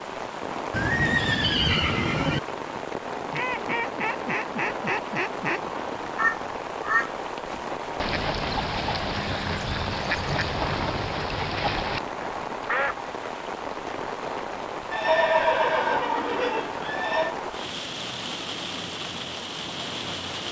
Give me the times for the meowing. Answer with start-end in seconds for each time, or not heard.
not heard.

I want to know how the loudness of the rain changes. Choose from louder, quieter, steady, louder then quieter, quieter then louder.
steady.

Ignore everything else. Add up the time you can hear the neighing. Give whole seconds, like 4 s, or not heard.
6 s.